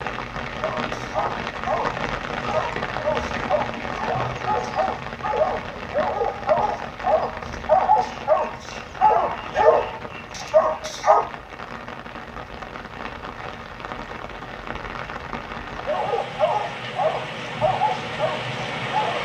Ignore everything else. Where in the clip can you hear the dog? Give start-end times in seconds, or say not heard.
0.6-11.3, 15.8-19.1.